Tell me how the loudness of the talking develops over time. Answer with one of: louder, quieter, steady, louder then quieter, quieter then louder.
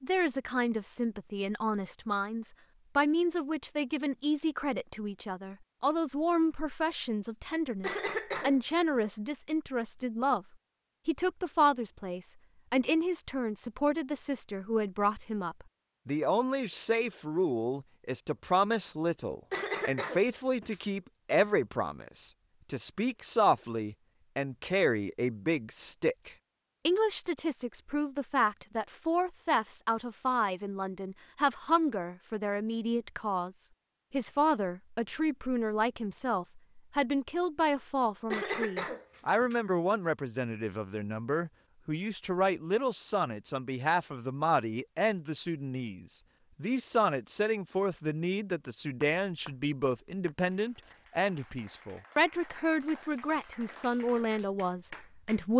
steady.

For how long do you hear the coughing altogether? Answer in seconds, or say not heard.
4 s.